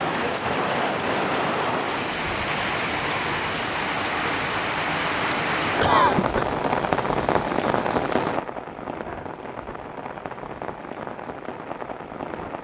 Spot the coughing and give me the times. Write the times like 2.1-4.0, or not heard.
5.8-6.5.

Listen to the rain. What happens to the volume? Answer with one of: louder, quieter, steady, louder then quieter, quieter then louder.
quieter.